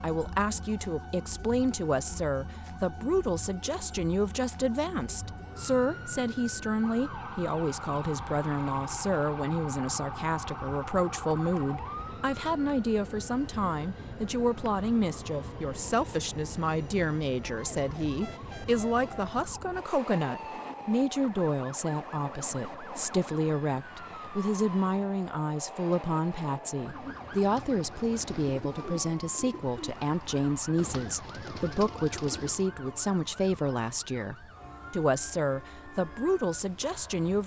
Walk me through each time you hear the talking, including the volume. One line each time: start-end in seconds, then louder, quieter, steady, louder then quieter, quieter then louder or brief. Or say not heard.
0.0-37.4 steady.